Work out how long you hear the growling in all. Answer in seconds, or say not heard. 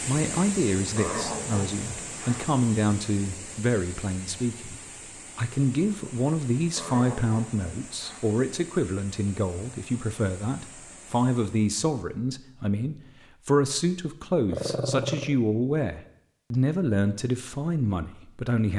4 s.